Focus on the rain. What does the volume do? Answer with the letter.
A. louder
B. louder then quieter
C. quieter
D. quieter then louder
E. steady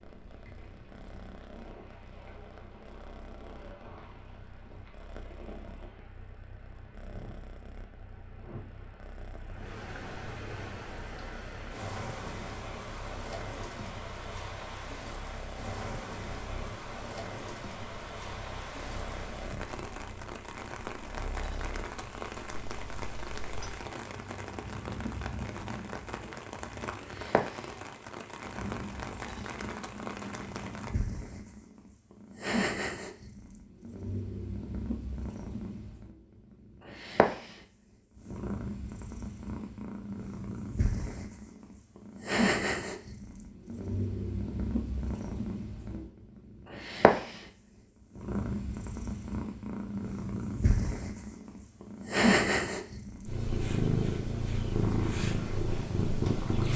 A.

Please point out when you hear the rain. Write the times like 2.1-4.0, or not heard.
0.0-30.9.